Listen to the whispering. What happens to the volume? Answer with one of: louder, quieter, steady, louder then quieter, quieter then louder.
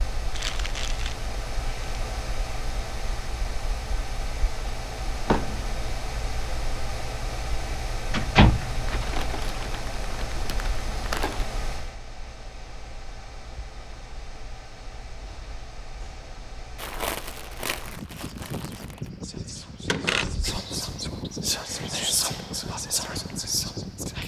louder.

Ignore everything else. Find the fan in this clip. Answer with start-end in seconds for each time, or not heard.
0.0-24.2.